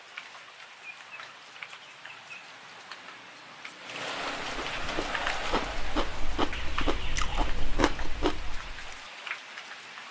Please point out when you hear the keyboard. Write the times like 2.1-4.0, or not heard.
not heard.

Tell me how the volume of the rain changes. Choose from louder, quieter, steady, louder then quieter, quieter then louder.
louder then quieter.